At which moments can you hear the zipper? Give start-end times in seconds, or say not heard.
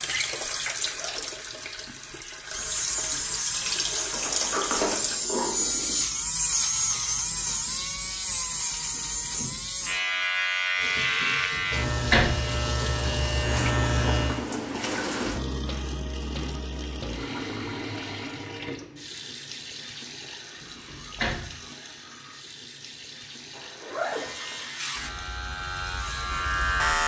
0.8-1.4, 23.6-24.6.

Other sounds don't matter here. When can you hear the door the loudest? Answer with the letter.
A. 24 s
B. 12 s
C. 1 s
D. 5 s
B.